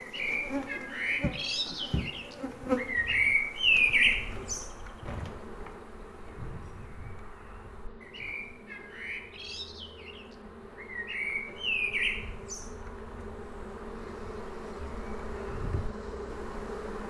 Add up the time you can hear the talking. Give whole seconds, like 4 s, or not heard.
not heard.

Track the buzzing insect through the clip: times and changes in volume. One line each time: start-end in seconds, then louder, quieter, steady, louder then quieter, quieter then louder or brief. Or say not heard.
0.0-17.0 quieter then louder.